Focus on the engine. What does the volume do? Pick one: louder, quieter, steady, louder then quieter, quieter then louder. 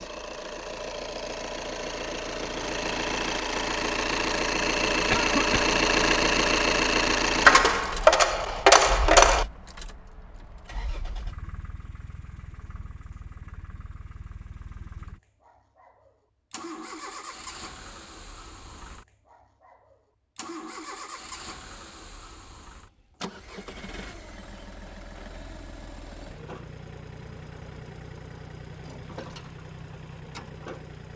quieter.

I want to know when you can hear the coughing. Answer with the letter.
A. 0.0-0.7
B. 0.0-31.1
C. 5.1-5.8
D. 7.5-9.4
C.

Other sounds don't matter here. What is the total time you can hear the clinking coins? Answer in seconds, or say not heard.
2 s.